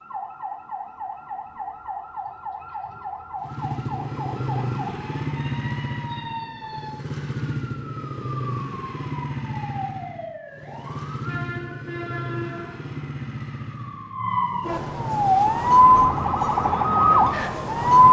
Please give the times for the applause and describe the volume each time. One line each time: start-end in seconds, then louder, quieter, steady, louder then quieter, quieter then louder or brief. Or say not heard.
not heard.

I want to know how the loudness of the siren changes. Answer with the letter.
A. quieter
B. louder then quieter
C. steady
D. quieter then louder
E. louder
E.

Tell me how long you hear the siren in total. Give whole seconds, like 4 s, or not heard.
18 s.